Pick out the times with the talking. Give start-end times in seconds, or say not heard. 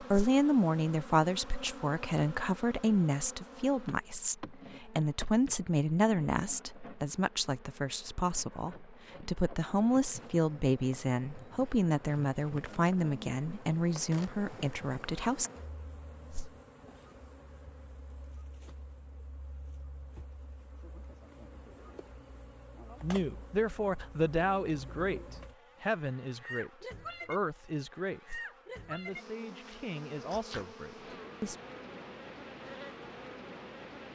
0.0-15.5, 23.0-31.6.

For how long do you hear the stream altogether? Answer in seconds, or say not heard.
not heard.